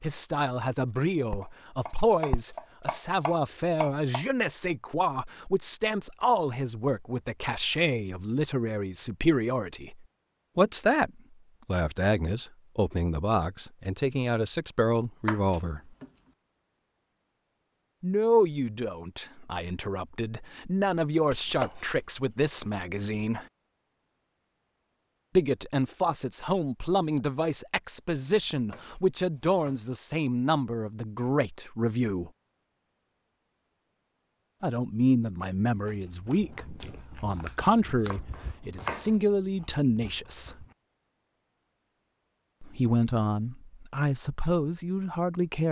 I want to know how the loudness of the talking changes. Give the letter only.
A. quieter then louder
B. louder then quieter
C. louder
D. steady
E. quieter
D.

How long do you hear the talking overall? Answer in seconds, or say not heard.
37 s.